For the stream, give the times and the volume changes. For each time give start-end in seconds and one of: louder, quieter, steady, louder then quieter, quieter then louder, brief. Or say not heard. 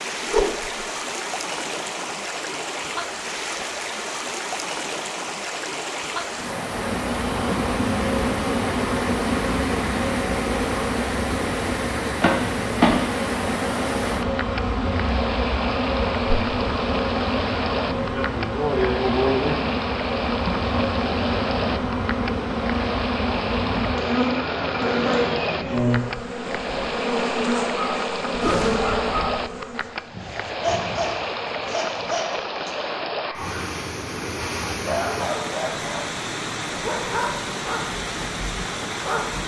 0.0-39.4 steady.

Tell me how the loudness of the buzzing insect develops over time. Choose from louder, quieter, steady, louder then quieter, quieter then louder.
steady.